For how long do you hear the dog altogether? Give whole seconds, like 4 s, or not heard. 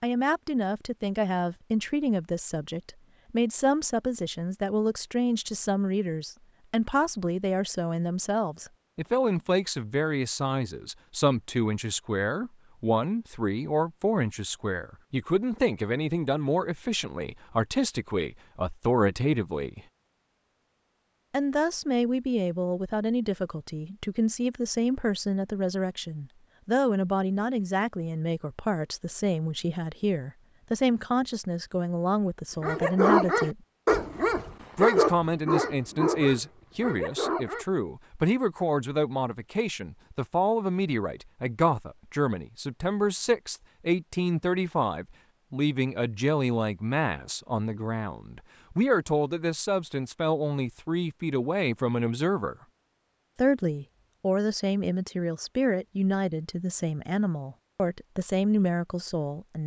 5 s.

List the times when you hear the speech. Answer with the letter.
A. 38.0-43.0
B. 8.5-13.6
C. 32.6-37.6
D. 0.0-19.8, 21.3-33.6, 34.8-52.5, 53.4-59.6
D.